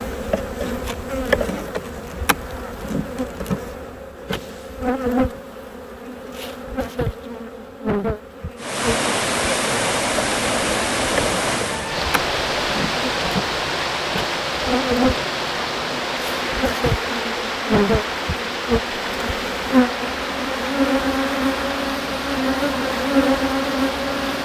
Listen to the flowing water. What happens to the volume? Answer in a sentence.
The loudness of the flowing water goes down.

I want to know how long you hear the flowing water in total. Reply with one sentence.
You can hear the flowing water for 16 seconds altogether.